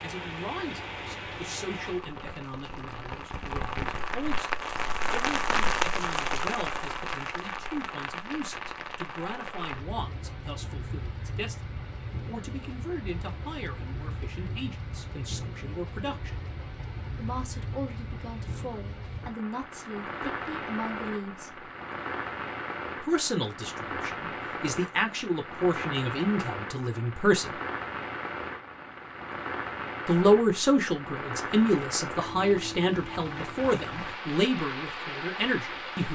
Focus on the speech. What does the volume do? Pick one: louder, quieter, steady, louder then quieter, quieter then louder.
louder.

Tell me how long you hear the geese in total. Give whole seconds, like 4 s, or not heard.
not heard.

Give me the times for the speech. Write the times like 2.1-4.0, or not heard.
0.0-16.4, 17.1-21.6, 23.0-27.6, 30.1-36.0.